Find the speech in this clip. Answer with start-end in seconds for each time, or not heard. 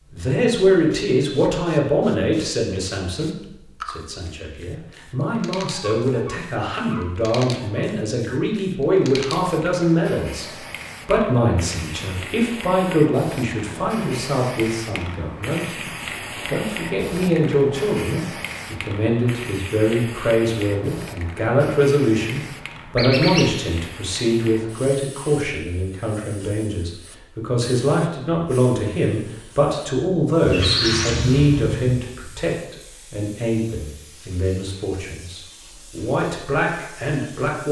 0.1-15.8, 16.4-37.6.